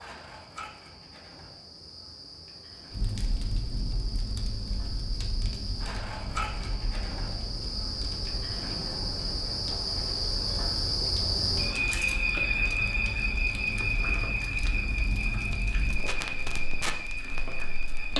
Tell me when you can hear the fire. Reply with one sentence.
You can hear the fire from 2.9 to 18.1 s.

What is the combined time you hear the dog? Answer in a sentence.
The dog can't be heard in this clip.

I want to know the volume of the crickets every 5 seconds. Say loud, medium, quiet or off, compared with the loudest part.
quiet, medium, loud, medium.